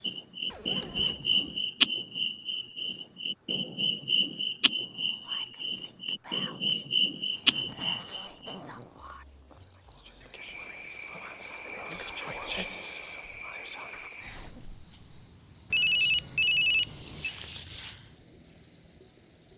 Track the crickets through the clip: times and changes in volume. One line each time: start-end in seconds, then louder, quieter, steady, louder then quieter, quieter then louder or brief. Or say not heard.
0.0-19.5 quieter.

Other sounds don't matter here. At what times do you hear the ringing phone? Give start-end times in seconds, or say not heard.
15.7-17.4.